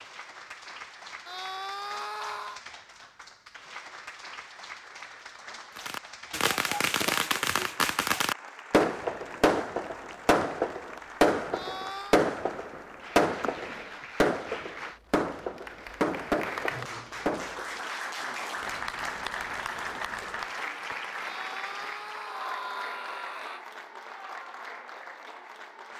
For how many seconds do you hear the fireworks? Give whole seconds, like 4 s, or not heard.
12 s.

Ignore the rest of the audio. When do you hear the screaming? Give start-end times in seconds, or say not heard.
1.2-2.6, 11.5-12.2, 21.2-23.6.